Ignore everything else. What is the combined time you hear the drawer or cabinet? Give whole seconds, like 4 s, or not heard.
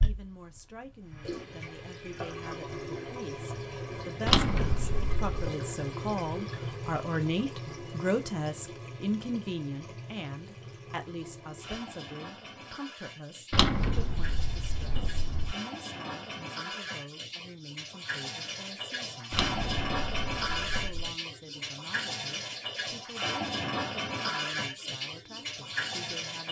5 s.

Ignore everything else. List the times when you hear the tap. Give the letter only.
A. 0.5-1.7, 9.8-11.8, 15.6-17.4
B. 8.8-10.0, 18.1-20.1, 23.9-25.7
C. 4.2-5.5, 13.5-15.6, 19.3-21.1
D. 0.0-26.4
D.